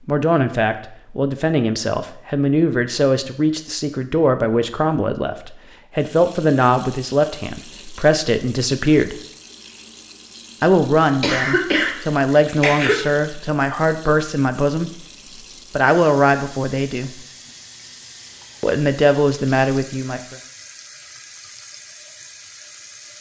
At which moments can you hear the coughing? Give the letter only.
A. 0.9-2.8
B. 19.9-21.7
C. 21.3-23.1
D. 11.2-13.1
D.